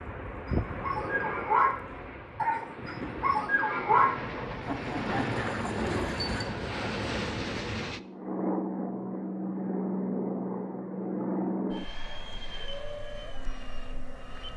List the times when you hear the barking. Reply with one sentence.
You can hear the barking from 0.5 to 1.8 s and from 2.4 to 6.5 s.